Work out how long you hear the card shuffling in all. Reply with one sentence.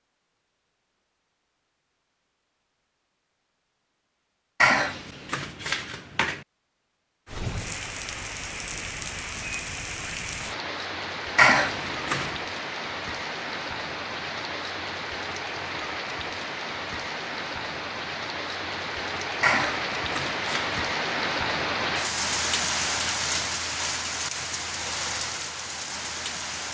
You can hear the card shuffling for 4 seconds altogether.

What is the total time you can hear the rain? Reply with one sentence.
You can hear the rain for 19 seconds altogether.